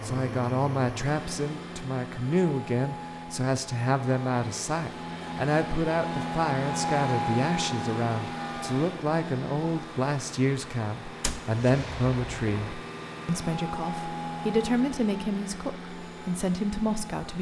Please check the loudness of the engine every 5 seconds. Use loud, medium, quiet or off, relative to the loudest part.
medium, loud, medium, medium.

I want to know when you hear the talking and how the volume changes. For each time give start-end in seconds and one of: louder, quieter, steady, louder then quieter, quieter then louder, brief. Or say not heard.
0.0-17.3 steady.